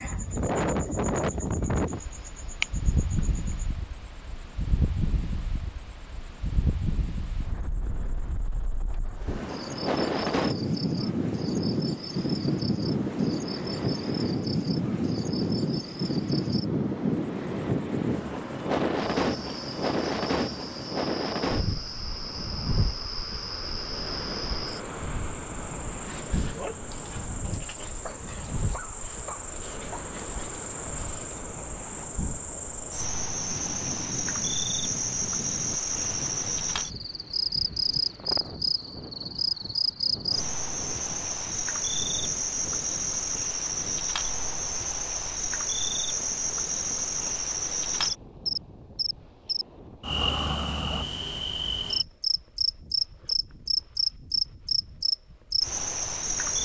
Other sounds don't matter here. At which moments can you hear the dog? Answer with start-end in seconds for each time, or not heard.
26.1-31.4.